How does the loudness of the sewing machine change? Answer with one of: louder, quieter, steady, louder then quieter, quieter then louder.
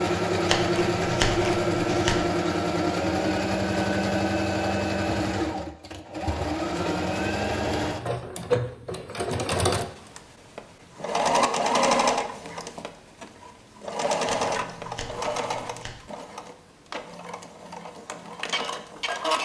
quieter.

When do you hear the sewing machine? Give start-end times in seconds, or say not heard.
0.0-19.4.